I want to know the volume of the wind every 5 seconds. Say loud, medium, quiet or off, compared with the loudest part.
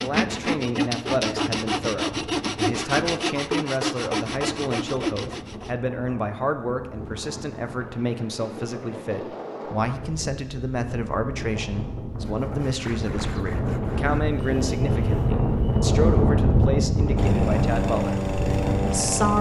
quiet, quiet, medium, loud.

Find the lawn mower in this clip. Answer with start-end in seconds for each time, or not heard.
17.1-19.3.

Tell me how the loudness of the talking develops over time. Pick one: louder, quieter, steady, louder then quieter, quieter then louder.
steady.